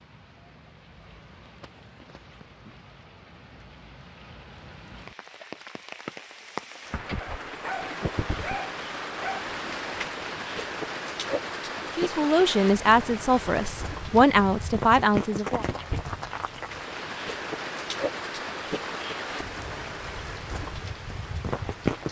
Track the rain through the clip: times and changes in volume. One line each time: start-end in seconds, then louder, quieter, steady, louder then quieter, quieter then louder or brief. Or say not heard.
0.0-22.0 louder.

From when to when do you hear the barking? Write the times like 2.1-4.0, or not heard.
7.2-9.4.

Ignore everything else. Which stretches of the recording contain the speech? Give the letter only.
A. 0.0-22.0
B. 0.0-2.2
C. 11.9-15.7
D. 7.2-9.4
C.